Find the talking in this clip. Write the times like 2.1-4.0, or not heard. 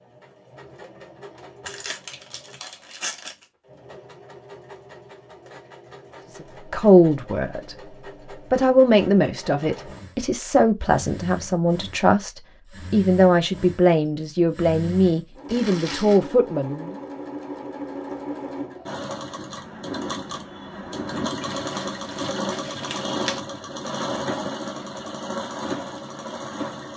6.3-16.9.